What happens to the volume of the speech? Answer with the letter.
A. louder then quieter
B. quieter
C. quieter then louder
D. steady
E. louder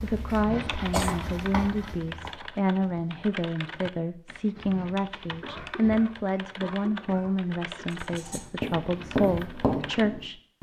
D.